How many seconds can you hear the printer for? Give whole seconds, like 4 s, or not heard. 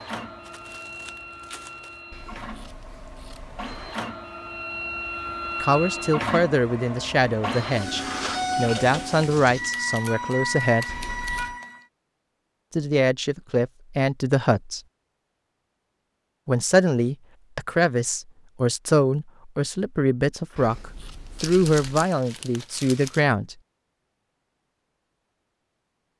12 s.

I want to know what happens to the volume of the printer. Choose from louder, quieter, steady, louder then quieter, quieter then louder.
louder.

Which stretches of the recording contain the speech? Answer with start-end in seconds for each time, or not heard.
5.6-10.8, 12.7-14.8, 16.4-23.6.